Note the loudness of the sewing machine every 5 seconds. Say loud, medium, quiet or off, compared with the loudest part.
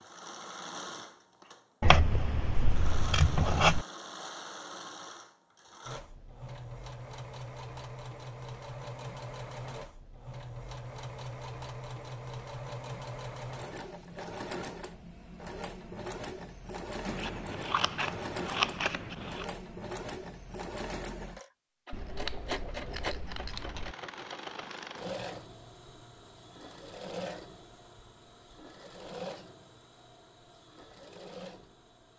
loud, loud, loud, loud, loud, loud, medium.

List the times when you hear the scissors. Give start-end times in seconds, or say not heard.
1.8-3.9, 17.1-19.4, 21.9-23.9.